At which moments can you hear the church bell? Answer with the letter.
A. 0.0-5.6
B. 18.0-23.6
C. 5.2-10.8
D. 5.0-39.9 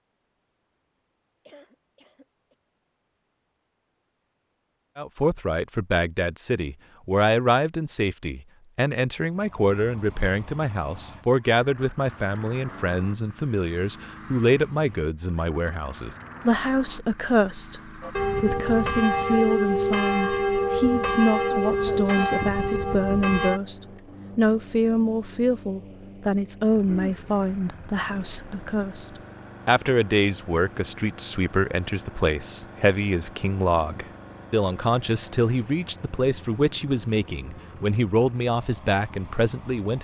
B.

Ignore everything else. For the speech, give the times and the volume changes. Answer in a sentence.
The speech can be heard from 5.0 to 39.9 s, at a steady volume.